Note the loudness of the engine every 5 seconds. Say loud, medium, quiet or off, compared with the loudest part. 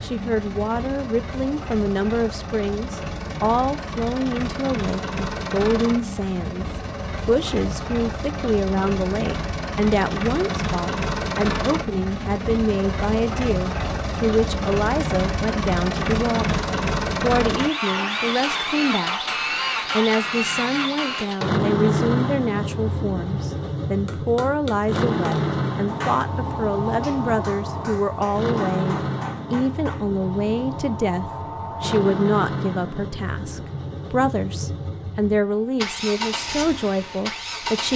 medium, medium, loud, loud, loud, loud, medium, medium.